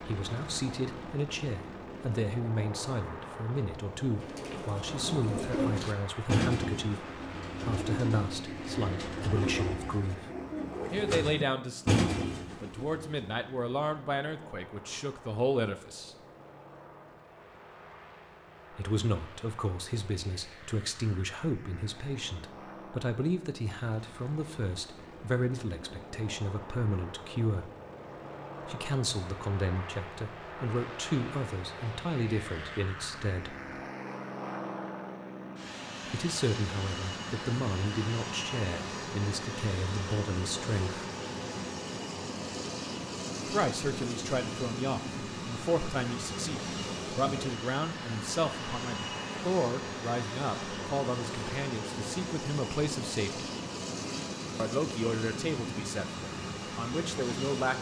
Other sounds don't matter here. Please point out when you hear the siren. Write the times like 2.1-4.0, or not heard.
not heard.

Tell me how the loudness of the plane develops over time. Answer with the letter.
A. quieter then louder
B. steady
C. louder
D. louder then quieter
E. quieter
A.